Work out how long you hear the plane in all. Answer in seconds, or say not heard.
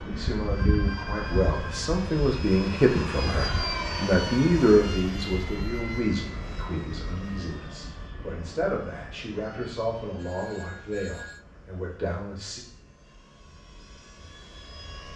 15 s.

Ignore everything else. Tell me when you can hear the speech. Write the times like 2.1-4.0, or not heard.
0.0-12.6.